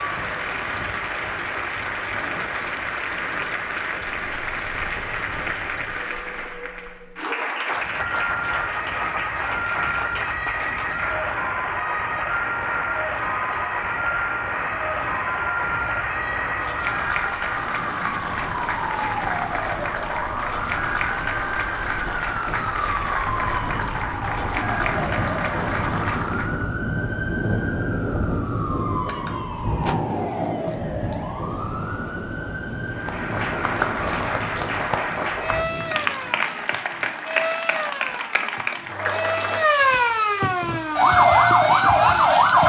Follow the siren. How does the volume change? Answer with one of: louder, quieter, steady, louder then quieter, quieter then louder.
louder.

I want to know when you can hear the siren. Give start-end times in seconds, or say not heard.
8.0-42.6.